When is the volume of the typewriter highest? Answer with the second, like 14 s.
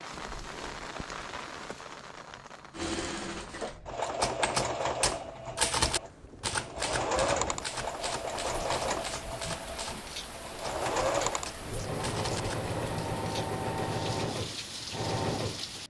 6 s.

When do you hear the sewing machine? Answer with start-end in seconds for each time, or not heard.
2.8-15.8.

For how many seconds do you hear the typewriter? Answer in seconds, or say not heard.
9 s.